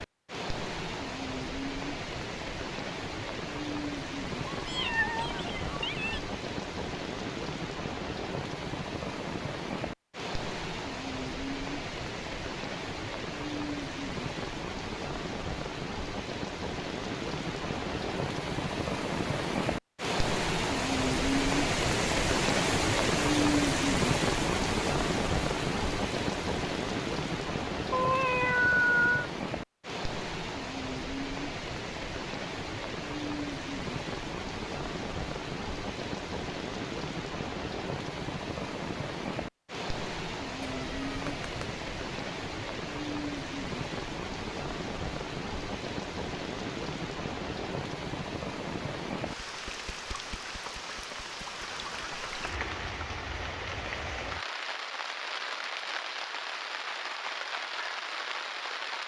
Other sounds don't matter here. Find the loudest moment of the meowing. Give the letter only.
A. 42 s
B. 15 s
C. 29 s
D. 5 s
C.